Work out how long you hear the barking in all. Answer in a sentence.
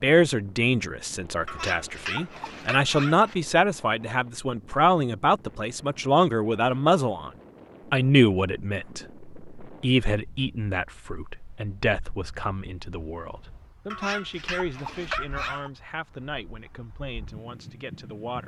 The barking can be heard for 4 seconds in total.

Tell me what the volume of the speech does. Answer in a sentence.
The volume of the speech goes down.